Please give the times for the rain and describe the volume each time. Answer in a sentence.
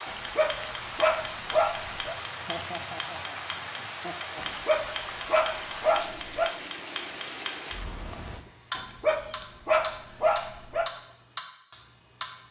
The rain can be heard from 0.0 to 8.4 s, at a steady volume.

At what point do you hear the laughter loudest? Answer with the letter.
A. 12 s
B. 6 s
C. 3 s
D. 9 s
C.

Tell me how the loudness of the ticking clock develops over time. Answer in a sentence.
The volume of the ticking clock stays about the same.